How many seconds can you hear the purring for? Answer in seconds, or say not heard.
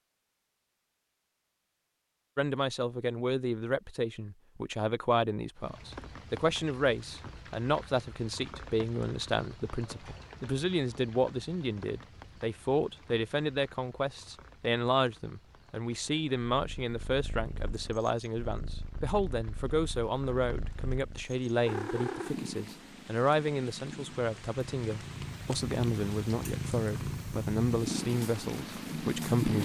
13 s.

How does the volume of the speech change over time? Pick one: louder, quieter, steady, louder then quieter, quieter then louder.
steady.